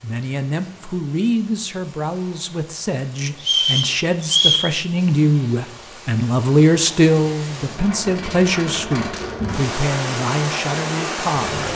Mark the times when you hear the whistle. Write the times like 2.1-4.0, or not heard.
3.4-4.7.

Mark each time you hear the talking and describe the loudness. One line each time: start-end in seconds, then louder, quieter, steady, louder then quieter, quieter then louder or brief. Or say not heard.
0.0-11.7 louder then quieter.